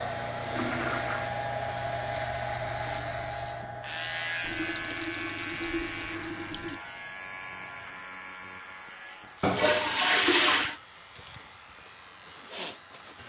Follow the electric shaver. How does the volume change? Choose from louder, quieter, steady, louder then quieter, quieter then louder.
louder then quieter.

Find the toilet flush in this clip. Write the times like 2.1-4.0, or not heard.
0.5-1.3, 4.4-6.8, 9.4-10.8.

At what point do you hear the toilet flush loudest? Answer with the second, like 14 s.
10 s.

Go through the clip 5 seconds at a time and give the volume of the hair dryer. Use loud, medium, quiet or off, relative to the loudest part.
loud, quiet, quiet.